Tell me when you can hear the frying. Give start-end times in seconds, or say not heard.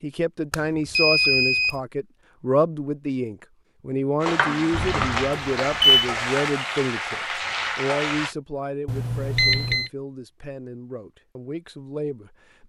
4.2-8.3.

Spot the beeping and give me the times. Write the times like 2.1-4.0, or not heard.
0.5-1.8, 5.3-6.0, 8.8-9.9.